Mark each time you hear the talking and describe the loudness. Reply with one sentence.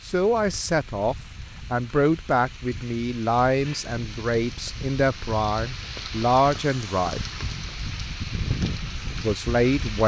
The talking can be heard from 0.0 to 7.2 s, at a steady volume; and briefly from 9.2 to 10.0 s.